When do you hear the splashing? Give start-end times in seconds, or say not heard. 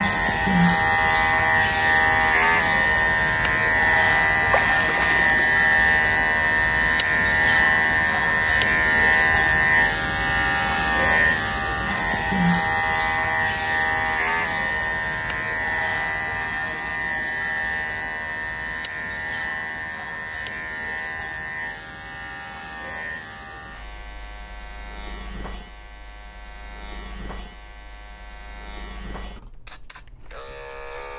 4.5-5.4.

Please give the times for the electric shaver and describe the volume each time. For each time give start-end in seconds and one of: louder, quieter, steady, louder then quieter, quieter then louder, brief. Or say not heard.
0.0-31.1 quieter.